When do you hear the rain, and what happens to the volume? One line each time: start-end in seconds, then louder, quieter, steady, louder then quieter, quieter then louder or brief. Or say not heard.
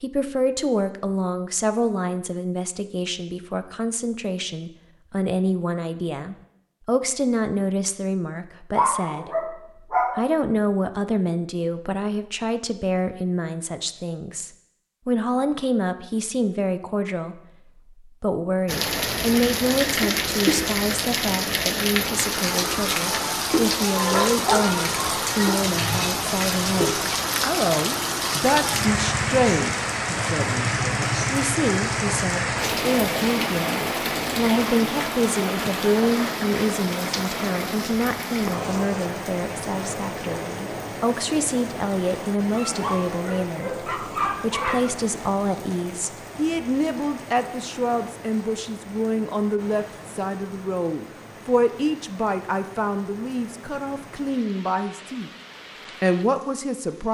18.6-57.0 quieter.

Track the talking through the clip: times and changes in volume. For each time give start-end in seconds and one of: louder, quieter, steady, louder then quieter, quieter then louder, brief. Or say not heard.
0.0-17.4 steady
18.1-55.3 steady
56.0-57.0 brief.